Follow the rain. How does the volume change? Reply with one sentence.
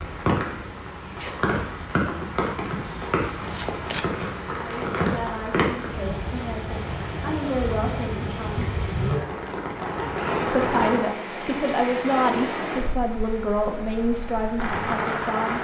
The volume of the rain stays about the same.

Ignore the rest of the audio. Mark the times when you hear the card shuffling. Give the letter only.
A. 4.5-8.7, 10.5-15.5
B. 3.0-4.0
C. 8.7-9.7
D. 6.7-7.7
B.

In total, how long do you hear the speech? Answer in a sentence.
The speech can be heard for 9 seconds in total.